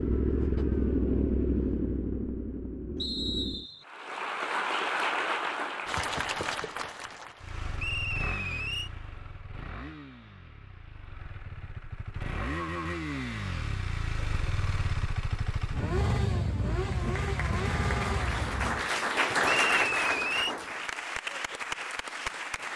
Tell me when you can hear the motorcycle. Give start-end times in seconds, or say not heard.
0.0-3.6, 7.4-18.9.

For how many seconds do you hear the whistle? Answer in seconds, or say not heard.
3 s.